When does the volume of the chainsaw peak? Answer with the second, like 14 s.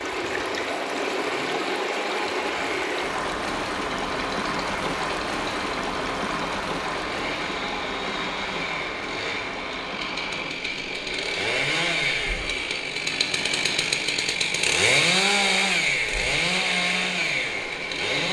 15 s.